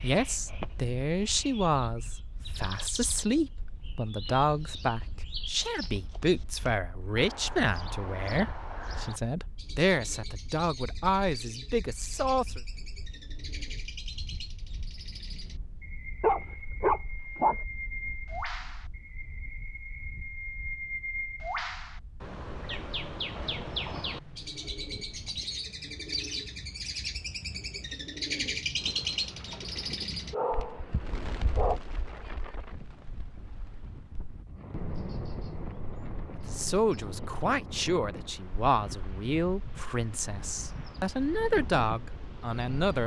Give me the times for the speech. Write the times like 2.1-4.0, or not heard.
0.0-12.6, 36.5-43.0.